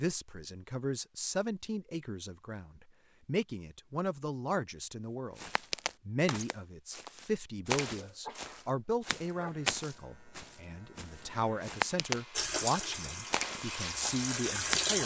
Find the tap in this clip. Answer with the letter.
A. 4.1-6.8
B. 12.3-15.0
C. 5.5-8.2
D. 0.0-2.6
B.